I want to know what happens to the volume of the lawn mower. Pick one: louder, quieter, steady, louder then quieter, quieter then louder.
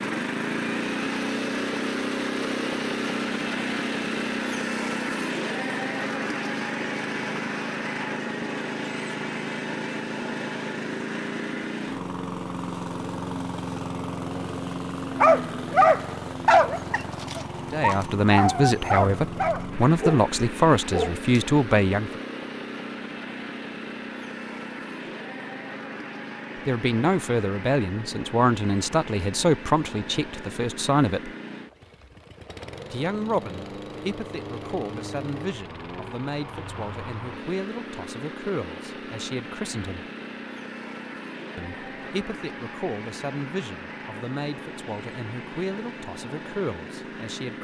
quieter.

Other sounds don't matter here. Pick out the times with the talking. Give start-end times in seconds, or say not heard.
17.7-22.2, 26.6-31.3, 32.9-40.0, 41.5-47.5.